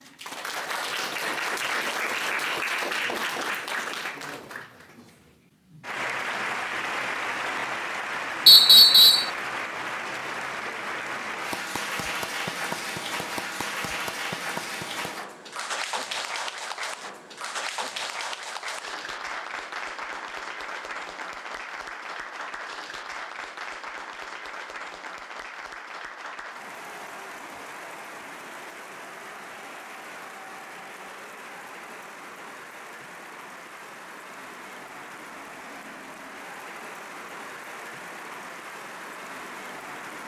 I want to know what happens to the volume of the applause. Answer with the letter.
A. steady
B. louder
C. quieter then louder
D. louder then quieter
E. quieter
E.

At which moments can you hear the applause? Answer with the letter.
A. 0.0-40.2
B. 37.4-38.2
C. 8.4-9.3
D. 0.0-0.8
A.